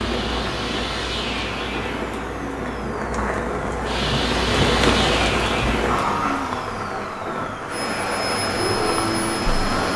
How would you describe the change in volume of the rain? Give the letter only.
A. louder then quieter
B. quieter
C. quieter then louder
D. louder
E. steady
A.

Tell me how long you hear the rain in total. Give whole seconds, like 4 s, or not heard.
10 s.